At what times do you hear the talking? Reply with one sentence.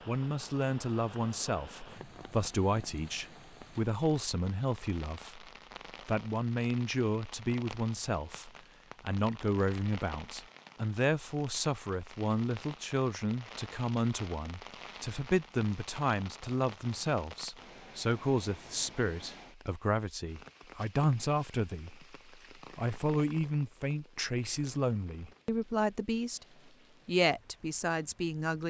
You can hear the talking from 0.1 to 5.5 s, from 6.0 to 22.1 s, from 22.8 to 26.4 s and from 27.1 to 28.6 s.